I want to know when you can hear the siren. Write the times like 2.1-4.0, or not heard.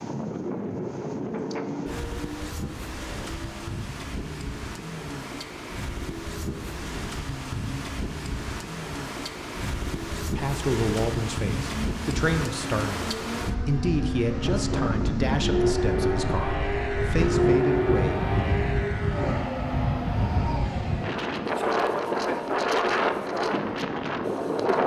not heard.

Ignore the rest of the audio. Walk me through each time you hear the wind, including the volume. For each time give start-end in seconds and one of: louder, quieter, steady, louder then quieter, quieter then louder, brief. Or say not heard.
0.0-24.8 louder.